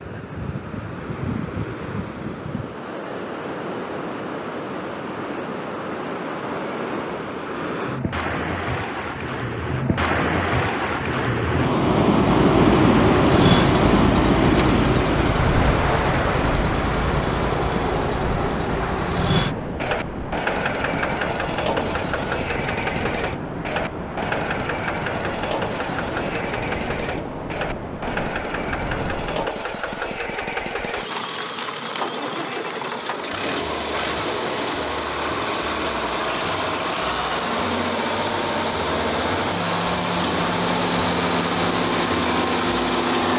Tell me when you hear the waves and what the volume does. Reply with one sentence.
The waves can be heard from 0.0 to 29.5 s, getting louder then quieter.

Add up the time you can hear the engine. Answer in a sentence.
The engine can be heard for 31 seconds in total.